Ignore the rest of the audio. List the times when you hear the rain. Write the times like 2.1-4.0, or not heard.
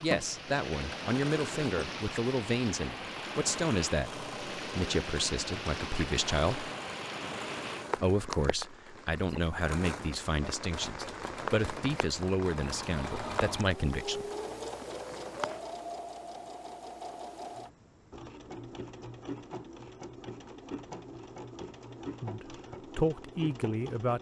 0.0-15.6.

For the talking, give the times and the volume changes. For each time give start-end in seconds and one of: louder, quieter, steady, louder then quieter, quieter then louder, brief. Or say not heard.
0.0-6.7 steady
8.0-14.2 steady
22.2-24.1 brief.